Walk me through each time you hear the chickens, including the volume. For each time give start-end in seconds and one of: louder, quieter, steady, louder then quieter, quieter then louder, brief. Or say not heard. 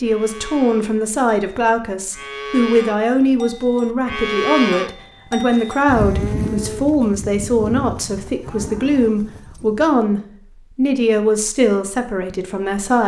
not heard.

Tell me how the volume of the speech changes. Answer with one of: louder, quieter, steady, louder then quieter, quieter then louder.
steady.